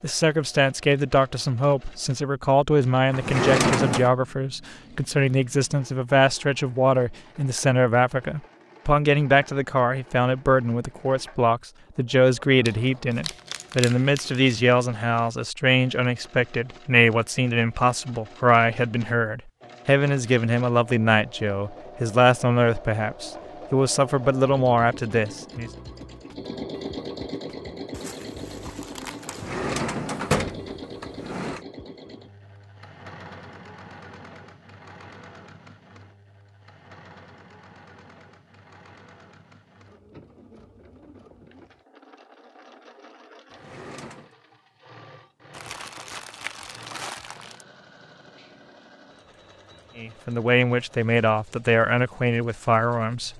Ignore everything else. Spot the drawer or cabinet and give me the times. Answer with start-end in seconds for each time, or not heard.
3.1-4.1, 29.2-31.6, 43.5-44.3.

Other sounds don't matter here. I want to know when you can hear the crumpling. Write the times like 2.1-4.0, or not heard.
12.7-14.5, 27.9-29.5, 45.5-47.6.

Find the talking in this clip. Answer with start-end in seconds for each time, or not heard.
0.0-25.7, 50.0-53.3.